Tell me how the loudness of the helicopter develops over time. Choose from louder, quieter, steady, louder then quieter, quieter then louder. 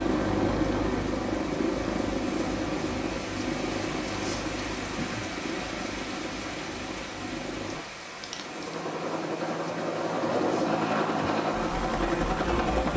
quieter then louder.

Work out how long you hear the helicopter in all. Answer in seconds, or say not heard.
13 s.